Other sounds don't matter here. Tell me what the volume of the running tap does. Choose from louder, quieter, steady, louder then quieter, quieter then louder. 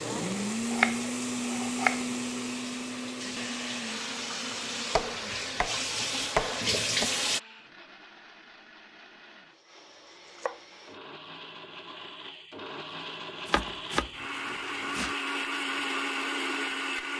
louder.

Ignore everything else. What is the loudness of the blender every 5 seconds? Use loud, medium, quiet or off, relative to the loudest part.
loud, quiet, medium, loud.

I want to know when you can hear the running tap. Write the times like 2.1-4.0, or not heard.
0.0-7.4.